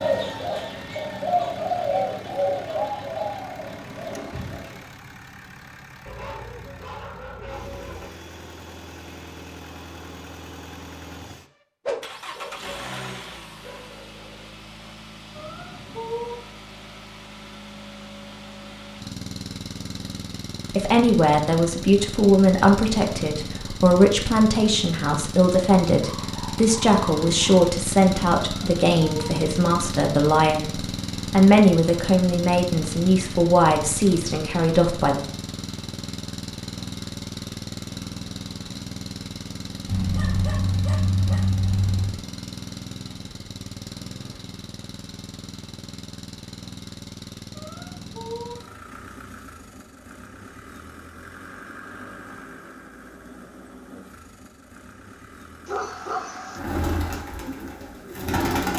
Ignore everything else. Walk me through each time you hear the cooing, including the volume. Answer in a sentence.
The cooing can be heard from 0.0 to 4.8 s, getting louder then quieter; and briefly from 56.5 to 58.7 s.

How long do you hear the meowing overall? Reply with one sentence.
The meowing can be heard for 3 seconds in total.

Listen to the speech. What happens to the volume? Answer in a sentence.
The loudness of the speech stays about the same.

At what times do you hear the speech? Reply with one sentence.
You can hear the speech from 20.8 to 35.2 s.